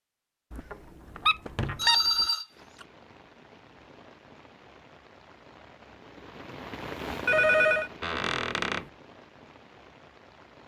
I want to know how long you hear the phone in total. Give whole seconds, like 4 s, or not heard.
2 s.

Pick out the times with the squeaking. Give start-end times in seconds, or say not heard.
0.5-2.0, 8.0-8.8.